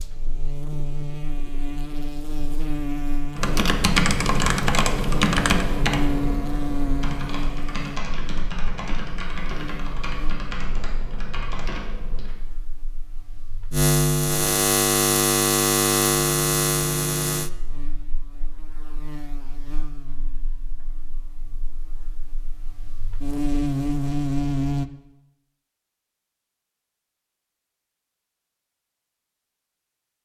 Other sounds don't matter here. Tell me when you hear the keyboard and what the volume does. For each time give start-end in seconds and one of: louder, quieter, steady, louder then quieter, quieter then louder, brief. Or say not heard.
3.4-12.3 quieter.